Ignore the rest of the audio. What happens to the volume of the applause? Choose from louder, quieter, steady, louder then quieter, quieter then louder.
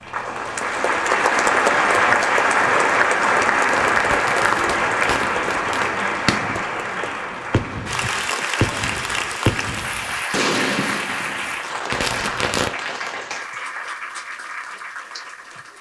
quieter.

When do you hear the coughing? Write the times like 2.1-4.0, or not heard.
not heard.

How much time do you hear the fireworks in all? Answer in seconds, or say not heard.
8 s.